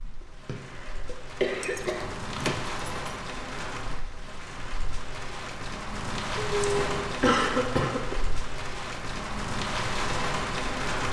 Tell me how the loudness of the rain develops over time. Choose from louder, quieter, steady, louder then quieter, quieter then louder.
louder.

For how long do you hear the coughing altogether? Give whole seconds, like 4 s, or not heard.
3 s.